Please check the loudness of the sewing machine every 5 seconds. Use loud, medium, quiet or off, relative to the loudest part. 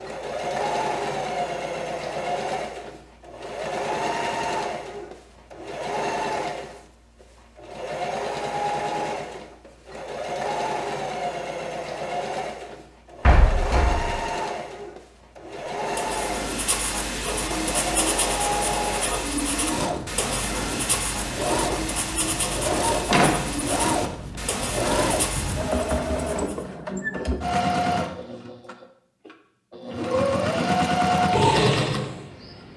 medium, medium, medium, medium, medium, medium, loud.